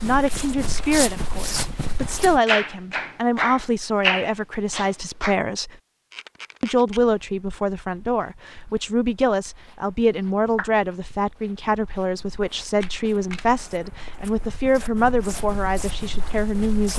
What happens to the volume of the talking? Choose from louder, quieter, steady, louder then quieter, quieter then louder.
steady.